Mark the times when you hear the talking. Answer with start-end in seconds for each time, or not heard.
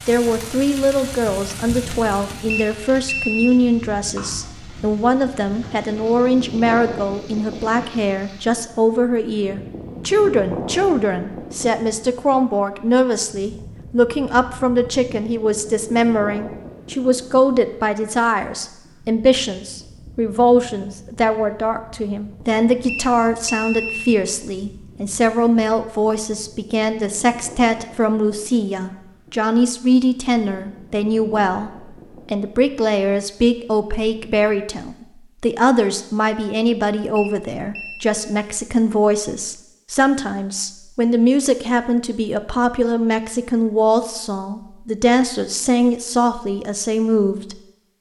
0.1-47.9.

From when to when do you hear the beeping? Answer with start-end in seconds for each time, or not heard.
2.5-3.5, 22.9-24.5, 37.1-38.1.